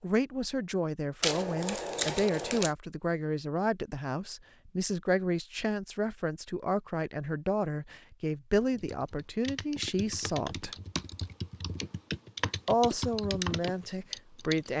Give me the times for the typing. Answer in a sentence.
You can hear the typing from 8.8 to 14.7 s.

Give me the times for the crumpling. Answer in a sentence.
You can hear the crumpling from 1.2 to 2.8 s.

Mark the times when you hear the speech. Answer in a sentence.
The speech can be heard from 0.0 to 10.7 s and from 12.7 to 14.7 s.